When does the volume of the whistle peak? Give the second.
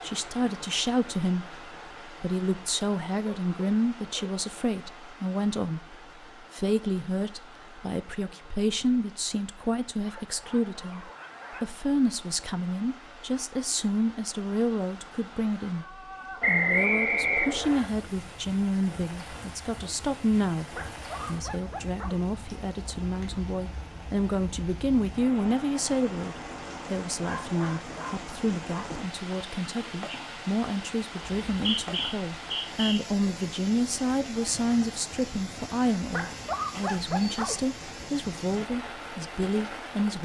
17 s.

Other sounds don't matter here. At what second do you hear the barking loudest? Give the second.
37 s.